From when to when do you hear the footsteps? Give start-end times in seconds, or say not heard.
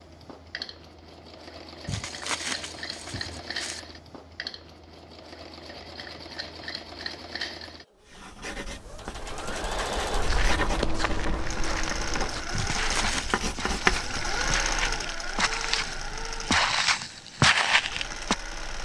10.1-18.4.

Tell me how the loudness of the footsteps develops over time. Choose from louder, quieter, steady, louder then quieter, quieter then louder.
louder.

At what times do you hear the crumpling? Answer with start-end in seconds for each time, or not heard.
1.9-3.8, 12.5-13.4.